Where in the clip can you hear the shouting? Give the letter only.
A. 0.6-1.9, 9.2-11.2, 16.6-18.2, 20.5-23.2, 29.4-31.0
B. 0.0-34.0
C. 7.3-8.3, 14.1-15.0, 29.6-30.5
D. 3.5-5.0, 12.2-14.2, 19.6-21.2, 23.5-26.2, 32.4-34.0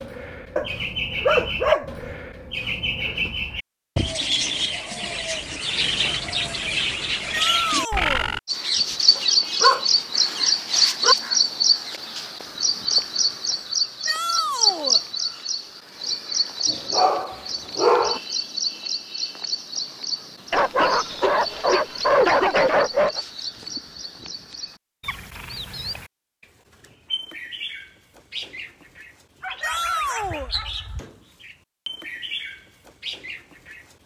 C.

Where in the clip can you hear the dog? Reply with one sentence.
You can hear the dog from 0.6 to 1.9 s, from 9.2 to 11.2 s, from 16.6 to 18.2 s, from 20.5 to 23.2 s and from 29.4 to 31.0 s.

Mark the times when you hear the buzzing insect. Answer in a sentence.
You can't hear the buzzing insect here.